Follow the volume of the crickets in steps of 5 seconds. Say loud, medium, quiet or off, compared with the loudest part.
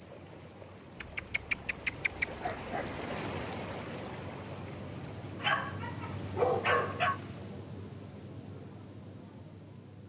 medium, loud.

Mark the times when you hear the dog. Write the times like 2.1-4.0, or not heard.
1.0-3.2, 5.4-7.2.